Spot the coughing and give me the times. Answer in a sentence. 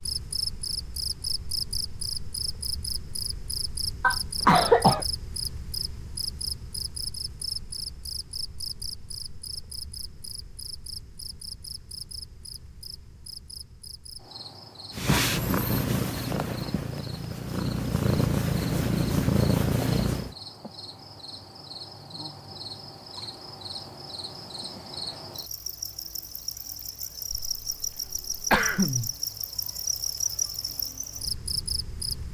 The coughing can be heard from 4.0 to 5.0 s and from 27.3 to 29.1 s.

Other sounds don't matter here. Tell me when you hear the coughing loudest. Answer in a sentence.
The loudest moment of the coughing is at 5 seconds.